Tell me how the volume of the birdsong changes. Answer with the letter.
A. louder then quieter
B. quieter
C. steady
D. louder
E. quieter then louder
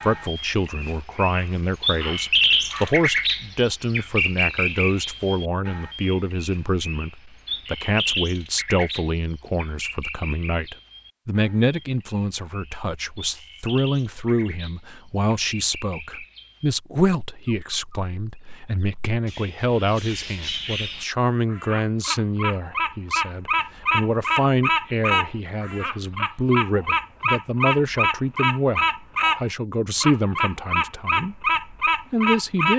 E.